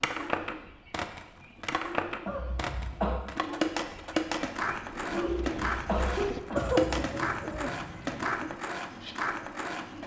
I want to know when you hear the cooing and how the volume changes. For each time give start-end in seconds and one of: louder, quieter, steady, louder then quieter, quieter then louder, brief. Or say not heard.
0.0-10.0 louder then quieter.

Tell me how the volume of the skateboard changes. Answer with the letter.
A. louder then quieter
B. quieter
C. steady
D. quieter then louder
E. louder
C.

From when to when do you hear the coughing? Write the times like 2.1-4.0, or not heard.
2.2-3.2, 5.1-7.0.